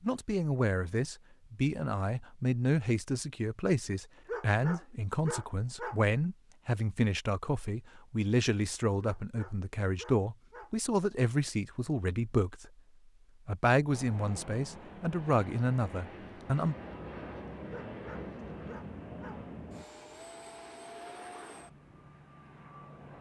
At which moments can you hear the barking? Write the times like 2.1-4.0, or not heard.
4.2-6.0, 9.0-10.7, 17.7-19.4.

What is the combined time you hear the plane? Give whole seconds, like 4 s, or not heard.
9 s.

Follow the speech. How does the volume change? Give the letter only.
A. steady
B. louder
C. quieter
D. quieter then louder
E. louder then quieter
A.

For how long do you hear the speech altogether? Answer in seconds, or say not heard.
16 s.